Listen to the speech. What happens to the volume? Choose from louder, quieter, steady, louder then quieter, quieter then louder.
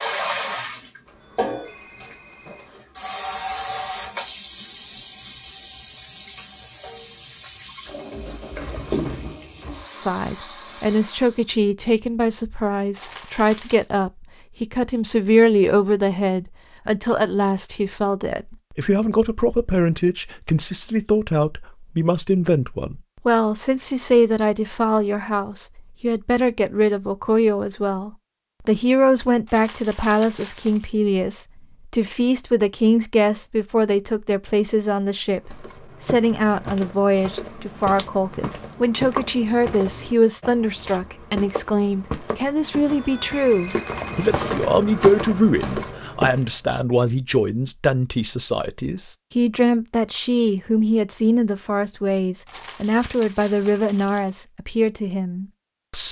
steady.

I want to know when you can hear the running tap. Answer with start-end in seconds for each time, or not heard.
0.0-11.5.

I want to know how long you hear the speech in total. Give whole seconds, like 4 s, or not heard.
46 s.